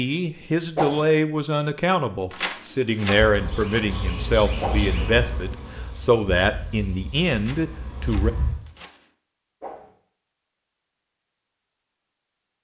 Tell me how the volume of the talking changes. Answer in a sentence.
The volume of the talking stays about the same.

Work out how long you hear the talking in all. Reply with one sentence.
You can hear the talking for 8 seconds altogether.